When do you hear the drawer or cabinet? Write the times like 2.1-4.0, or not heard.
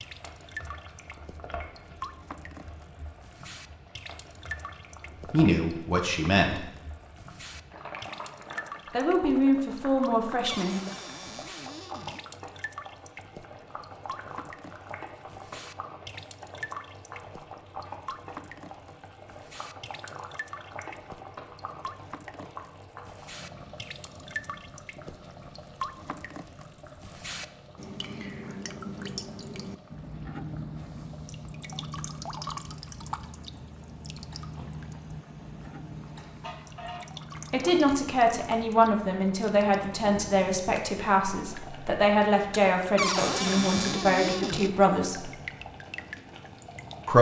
10.4-12.2, 43.0-44.7.